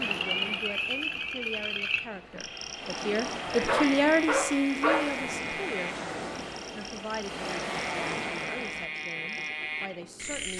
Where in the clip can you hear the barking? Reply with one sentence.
You can hear the barking from 3.6 to 5.2 s.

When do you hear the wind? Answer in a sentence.
The wind can be heard from 0.0 to 10.5 s.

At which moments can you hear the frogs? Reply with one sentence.
The frogs can be heard from 0.0 to 10.5 s.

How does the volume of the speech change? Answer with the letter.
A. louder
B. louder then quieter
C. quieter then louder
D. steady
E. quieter
B.